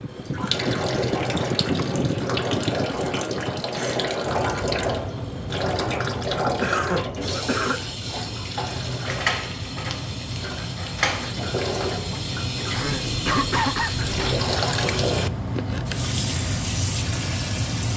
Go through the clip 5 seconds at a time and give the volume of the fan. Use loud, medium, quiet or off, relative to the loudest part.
loud, medium, loud, loud.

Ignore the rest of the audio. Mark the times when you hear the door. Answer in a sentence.
You can hear the door from 9.1 to 11.3 s.